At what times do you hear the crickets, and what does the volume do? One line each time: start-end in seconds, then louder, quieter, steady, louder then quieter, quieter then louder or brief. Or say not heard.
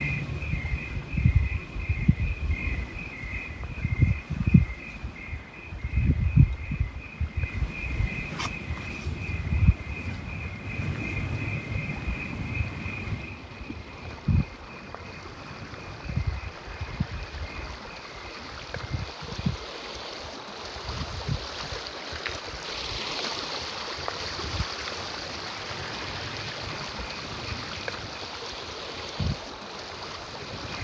0.0-30.8 quieter.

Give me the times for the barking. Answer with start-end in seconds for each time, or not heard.
not heard.